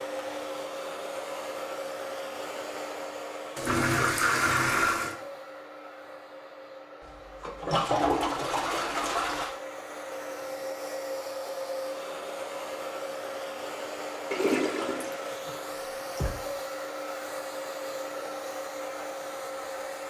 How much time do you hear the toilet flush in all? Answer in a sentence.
You can hear the toilet flush for 6 seconds altogether.